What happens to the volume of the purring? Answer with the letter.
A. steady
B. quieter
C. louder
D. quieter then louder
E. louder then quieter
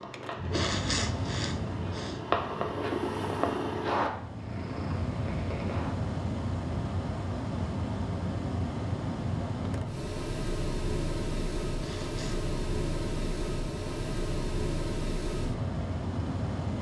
E.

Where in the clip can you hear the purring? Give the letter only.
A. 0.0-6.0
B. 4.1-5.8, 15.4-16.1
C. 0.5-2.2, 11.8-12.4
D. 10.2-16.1
A.